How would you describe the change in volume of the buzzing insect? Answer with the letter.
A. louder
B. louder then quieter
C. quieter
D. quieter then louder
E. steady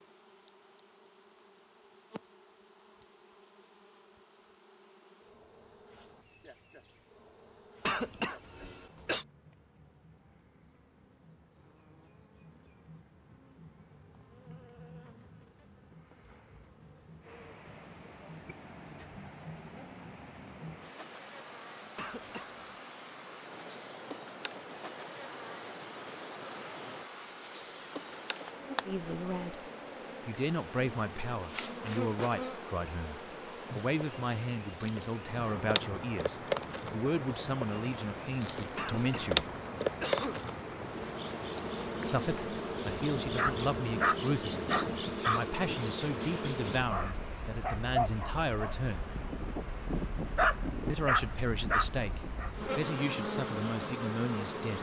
A.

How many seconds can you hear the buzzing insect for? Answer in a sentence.
You can hear the buzzing insect for 55 seconds altogether.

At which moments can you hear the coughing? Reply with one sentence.
You can hear the coughing from 7.8 to 9.2 s, from 21.9 to 22.6 s and from 38.8 to 40.5 s.